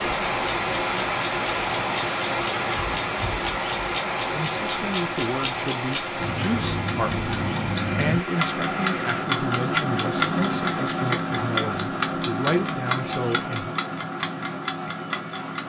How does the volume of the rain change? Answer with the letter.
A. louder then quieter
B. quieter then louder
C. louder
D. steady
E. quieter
E.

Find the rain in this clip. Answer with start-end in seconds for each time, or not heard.
0.0-9.2.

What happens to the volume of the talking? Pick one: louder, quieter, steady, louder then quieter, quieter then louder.
steady.